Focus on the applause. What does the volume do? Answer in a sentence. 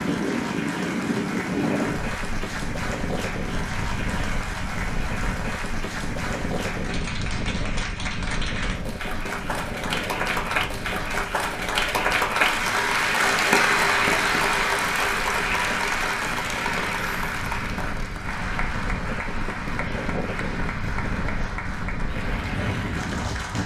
The volume of the applause goes up, then down.